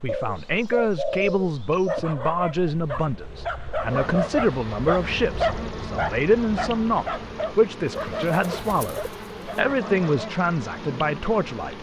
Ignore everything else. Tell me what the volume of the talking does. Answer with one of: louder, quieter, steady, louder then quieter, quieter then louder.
steady.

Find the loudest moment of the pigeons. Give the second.
1 s.